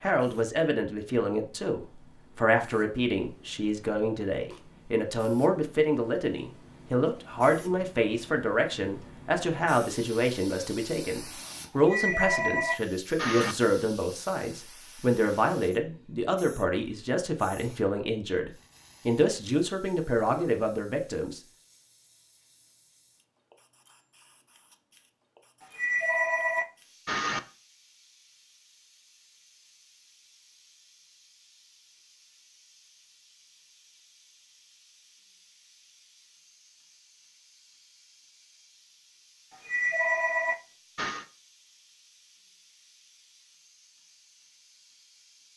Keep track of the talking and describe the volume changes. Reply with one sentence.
The loudness of the talking stays about the same.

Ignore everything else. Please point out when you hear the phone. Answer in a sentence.
You can hear the phone from 11.8 to 13.6 s, from 25.6 to 27.4 s and from 39.5 to 41.2 s.